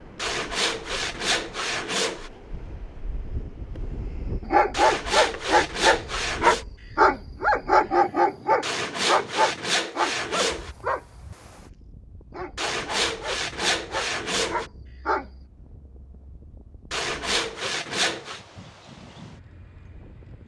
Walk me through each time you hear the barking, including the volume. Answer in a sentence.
The barking can be heard from 4.5 to 15.2 s, getting quieter.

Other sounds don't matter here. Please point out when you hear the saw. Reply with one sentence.
The saw can be heard from 0.1 to 2.3 s, from 4.7 to 6.7 s, from 8.6 to 10.7 s, from 12.6 to 14.7 s and from 16.9 to 18.4 s.